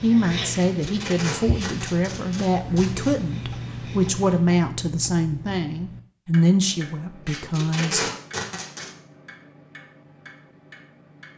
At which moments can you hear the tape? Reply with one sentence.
You can hear the tape from 0.5 to 3.1 s and from 7.2 to 8.9 s.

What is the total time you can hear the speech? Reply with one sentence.
The speech can be heard for 8 seconds in total.